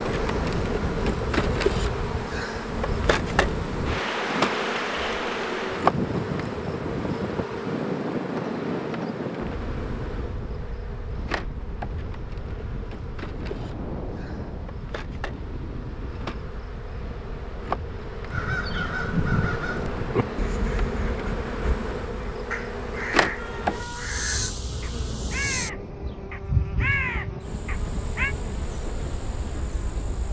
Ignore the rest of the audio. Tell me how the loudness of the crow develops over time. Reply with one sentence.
The volume of the crow goes down, then up.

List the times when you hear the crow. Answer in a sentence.
You can hear the crow from 18.3 to 28.4 s.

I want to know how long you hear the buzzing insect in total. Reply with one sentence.
You can hear the buzzing insect for 30 seconds altogether.